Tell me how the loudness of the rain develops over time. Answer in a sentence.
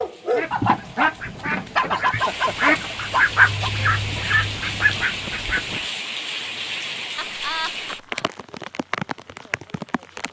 The volume of the rain goes up.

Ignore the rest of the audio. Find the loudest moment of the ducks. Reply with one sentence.
The loudest moment of the ducks is at 3 seconds.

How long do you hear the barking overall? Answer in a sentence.
The barking can be heard for 4 seconds in total.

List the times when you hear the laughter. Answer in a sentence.
The laughter can be heard from 1.7 to 3.0 s and from 7.2 to 8.2 s.